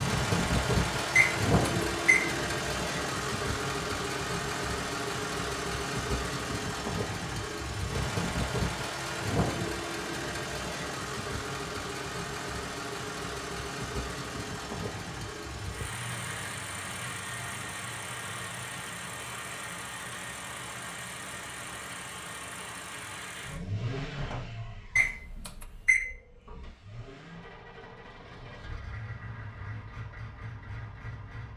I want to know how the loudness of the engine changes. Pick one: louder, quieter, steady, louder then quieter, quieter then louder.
quieter.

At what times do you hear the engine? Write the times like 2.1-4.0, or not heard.
0.0-31.5.